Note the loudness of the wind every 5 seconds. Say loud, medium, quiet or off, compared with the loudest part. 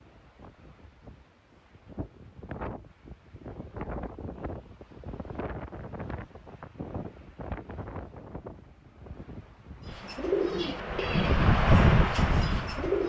quiet, quiet, loud.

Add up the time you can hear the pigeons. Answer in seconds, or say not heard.
3 s.